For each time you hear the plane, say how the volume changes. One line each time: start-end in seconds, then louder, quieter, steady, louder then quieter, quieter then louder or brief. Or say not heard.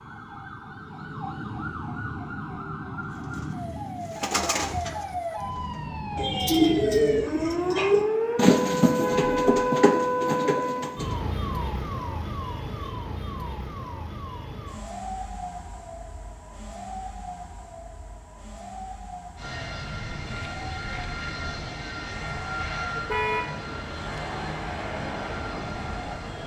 0.0-4.2 louder
19.4-26.4 steady.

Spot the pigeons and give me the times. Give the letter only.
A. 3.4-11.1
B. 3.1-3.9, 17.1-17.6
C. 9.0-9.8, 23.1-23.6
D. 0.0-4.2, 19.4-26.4
A.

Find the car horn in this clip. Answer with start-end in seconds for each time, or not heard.
9.0-9.8, 23.1-23.6.